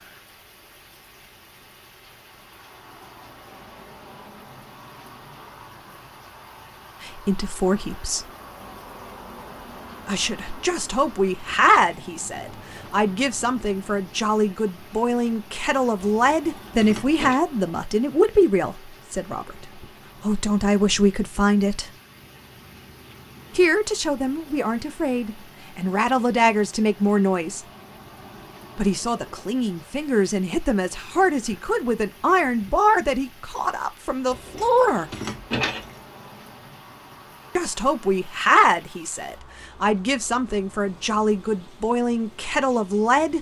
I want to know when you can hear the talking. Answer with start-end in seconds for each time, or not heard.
7.0-8.2, 10.1-21.9, 23.6-27.6, 28.8-35.1, 37.5-43.3.